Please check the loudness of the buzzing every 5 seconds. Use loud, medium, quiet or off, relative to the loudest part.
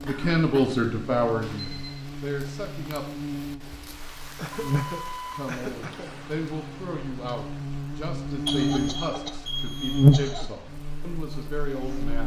quiet, medium, loud.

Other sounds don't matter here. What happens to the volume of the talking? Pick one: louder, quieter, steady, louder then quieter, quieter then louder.
quieter.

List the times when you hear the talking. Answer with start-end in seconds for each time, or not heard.
0.0-3.0, 5.3-12.2.